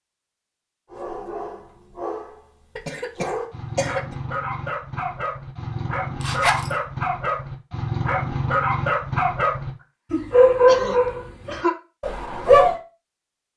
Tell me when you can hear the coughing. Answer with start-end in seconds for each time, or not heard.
2.8-4.2, 10.2-11.8.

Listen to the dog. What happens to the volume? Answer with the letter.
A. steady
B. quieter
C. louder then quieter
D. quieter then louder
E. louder
E.